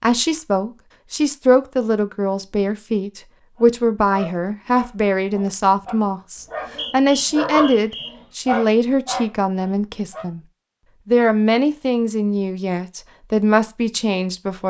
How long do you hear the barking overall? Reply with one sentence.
You can hear the barking for 7 seconds altogether.